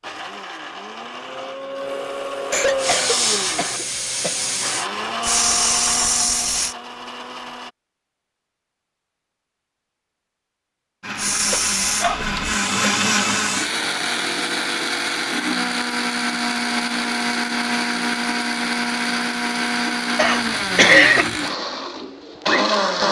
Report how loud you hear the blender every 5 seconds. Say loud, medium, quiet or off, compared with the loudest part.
medium, medium, loud, loud, loud.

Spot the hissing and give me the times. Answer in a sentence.
You can hear the hissing from 2.8 to 6.8 s and from 11.2 to 13.7 s.